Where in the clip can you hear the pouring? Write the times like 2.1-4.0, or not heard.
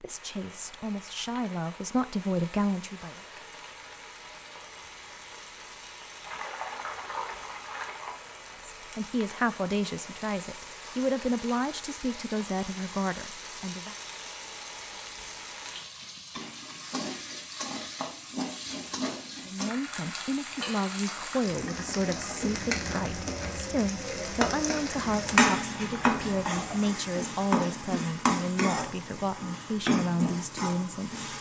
6.2-8.2, 25.0-26.9.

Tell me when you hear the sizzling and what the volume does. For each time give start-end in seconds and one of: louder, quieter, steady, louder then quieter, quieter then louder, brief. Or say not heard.
0.0-31.3 louder.